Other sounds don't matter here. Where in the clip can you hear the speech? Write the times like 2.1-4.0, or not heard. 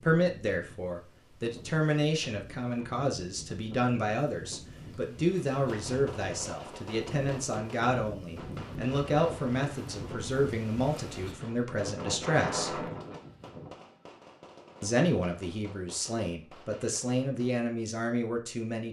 0.0-12.8, 14.8-18.8.